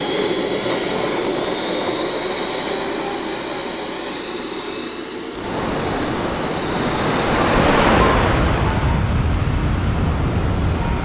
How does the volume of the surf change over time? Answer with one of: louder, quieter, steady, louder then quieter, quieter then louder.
louder then quieter.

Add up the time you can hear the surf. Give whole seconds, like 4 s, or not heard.
6 s.